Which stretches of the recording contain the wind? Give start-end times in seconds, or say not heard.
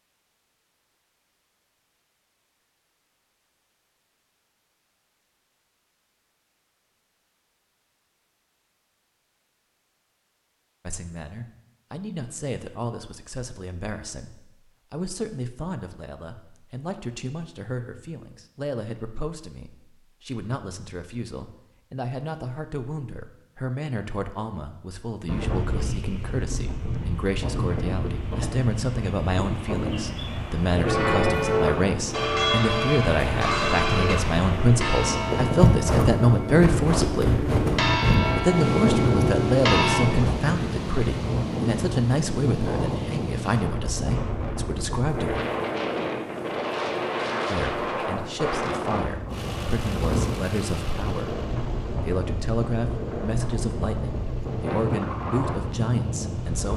25.2-56.7.